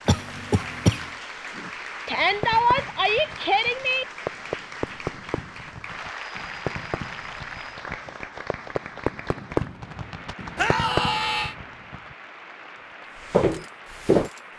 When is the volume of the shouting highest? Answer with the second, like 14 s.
3 s.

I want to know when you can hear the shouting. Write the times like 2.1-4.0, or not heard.
2.0-4.0, 10.6-11.6.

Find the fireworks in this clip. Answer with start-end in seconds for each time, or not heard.
1.5-12.2.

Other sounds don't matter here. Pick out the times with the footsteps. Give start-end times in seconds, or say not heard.
13.3-14.3.